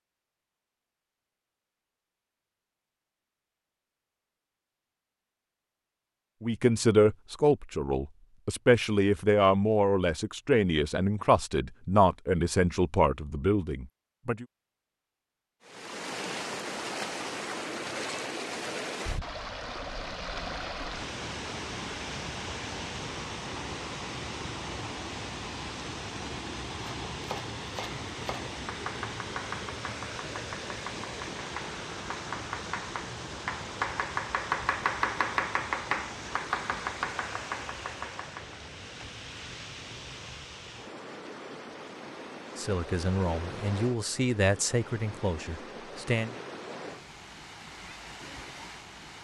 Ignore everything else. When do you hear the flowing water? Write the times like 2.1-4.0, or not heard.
15.6-49.1.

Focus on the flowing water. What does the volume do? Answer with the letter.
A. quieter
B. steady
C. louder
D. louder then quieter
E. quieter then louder
A.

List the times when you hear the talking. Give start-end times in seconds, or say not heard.
6.4-14.4, 42.5-46.4.